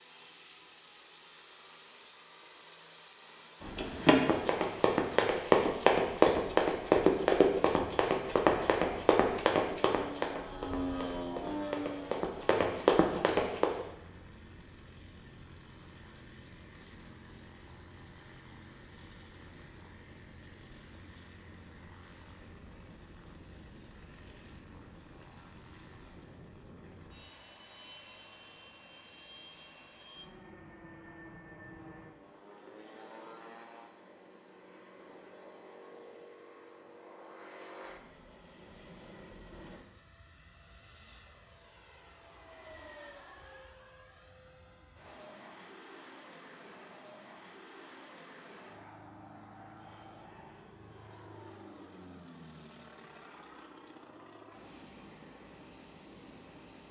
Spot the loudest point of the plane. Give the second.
11 s.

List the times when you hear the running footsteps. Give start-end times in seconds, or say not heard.
3.6-13.7.